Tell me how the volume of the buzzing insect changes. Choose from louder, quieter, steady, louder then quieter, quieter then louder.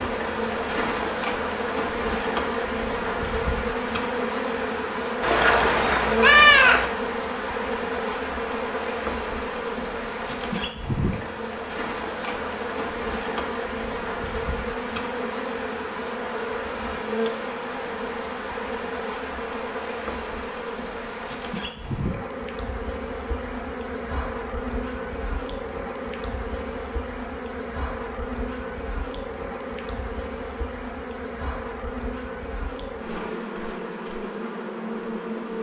quieter.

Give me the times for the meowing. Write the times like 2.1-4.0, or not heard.
5.2-6.9.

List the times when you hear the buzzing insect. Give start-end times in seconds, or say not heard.
0.0-35.5.